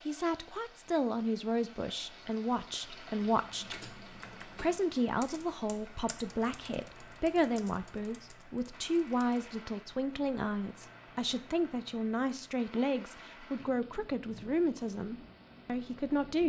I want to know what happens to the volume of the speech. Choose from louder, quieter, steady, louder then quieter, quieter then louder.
steady.